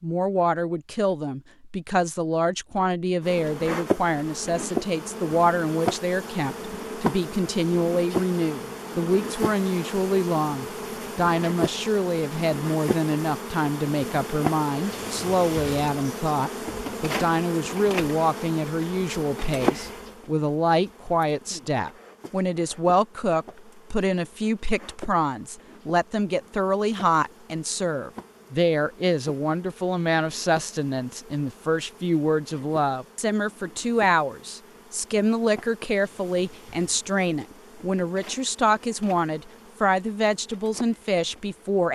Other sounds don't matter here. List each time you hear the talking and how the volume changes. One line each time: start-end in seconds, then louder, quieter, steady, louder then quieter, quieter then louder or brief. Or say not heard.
0.0-41.8 steady.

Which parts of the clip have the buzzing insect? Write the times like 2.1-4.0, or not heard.
3.2-41.8.